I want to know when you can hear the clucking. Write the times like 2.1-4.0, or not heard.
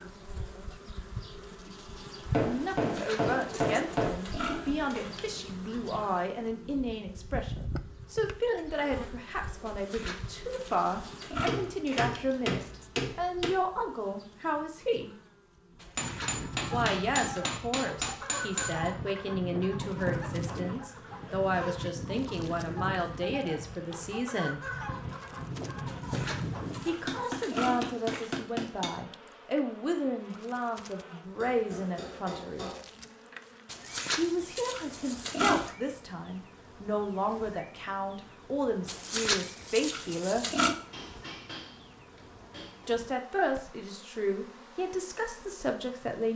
15.9-27.2.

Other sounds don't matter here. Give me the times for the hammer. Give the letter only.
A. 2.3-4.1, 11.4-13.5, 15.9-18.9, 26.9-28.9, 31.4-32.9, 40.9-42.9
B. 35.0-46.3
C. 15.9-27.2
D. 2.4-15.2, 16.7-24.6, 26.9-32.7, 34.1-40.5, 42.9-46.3
A.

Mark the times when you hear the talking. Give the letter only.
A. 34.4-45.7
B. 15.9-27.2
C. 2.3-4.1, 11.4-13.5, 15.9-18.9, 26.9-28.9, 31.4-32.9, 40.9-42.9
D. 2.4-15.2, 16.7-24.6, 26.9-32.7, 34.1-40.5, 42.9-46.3
D.